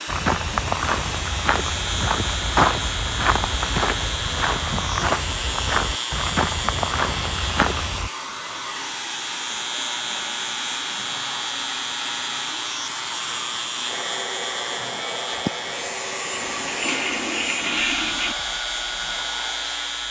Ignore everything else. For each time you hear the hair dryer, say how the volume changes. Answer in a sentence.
You can hear the hair dryer from 0.0 to 20.0 s, at a steady volume.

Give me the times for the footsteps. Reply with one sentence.
You can hear the footsteps from 0.1 to 8.1 s.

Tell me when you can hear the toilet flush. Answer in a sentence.
The toilet flush can be heard from 16.3 to 18.4 s.